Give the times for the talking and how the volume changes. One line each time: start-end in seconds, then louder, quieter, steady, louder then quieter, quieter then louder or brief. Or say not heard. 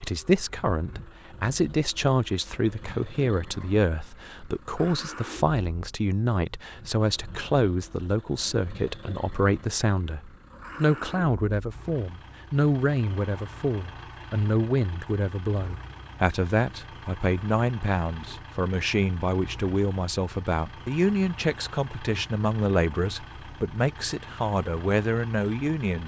0.0-26.0 steady.